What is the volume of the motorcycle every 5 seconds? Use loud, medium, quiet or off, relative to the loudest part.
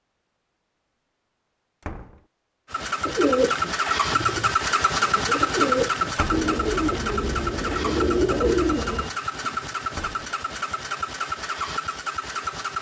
loud, loud, medium.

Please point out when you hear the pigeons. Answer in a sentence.
The pigeons can be heard from 3.0 to 9.1 s.